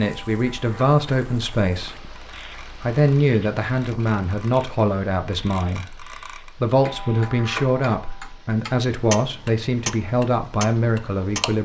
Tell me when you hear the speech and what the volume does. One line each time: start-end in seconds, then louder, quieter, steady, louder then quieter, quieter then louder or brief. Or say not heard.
0.0-11.6 steady.